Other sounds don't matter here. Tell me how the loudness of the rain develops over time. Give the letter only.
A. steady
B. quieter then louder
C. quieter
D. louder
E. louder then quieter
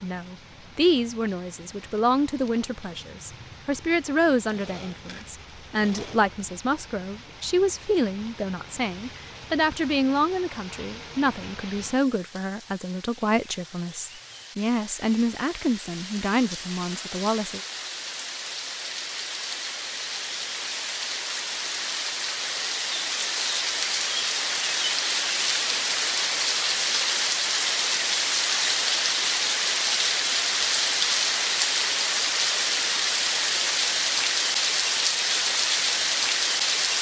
D.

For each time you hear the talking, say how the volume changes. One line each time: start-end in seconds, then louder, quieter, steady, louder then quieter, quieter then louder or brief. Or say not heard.
0.0-17.6 steady.